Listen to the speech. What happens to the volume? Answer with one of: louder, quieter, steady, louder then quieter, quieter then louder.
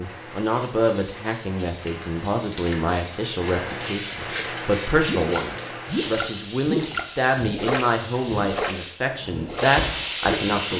steady.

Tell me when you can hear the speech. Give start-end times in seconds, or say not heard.
0.0-10.7.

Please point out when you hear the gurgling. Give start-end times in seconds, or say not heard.
4.3-10.7.